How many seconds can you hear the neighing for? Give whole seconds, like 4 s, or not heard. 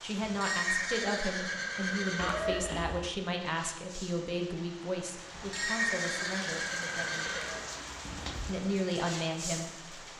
5 s.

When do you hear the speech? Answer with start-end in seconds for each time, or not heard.
0.0-7.4, 8.4-10.0.